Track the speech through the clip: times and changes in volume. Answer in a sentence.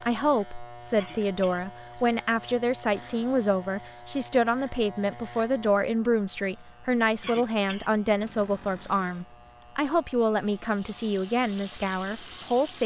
The speech can be heard from 0.0 to 12.8 s, at a steady volume.